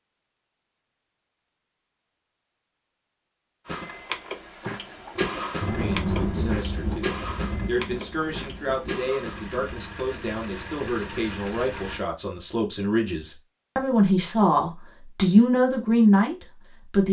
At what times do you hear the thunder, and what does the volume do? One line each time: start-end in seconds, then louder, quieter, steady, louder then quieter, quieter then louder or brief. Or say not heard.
5.2-9.8 quieter.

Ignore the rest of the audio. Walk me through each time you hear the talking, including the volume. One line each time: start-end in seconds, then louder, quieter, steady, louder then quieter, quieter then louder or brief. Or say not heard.
5.8-17.0 louder.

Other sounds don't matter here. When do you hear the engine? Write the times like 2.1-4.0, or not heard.
3.6-12.1.